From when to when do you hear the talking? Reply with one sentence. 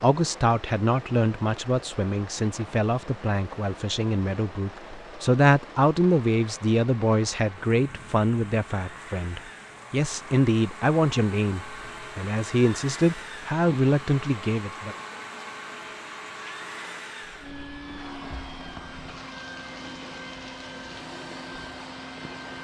The talking can be heard from 0.0 to 14.9 s.